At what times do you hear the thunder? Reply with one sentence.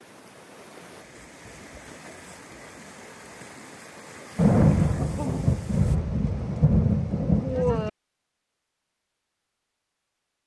You can hear the thunder from 4.3 to 7.9 s.